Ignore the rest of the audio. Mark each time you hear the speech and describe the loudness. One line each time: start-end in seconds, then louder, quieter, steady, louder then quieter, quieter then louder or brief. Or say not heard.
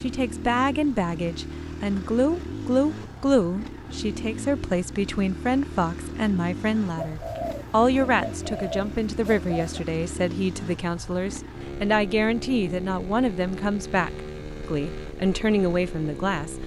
0.0-16.6 steady.